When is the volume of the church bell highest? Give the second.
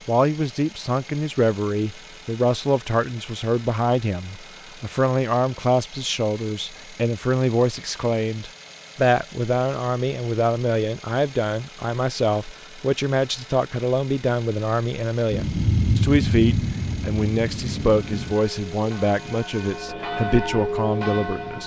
21 s.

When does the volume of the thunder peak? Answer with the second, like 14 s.
16 s.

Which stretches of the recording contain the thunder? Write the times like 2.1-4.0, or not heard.
15.3-18.4.